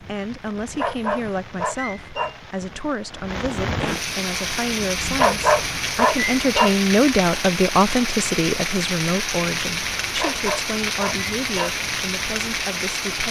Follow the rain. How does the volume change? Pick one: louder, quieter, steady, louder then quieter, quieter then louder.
louder.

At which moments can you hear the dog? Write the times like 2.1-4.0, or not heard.
0.8-2.4, 5.2-6.8, 10.2-11.8.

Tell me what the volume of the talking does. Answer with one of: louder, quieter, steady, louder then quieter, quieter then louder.
louder then quieter.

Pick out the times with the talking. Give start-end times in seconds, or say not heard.
0.0-13.2.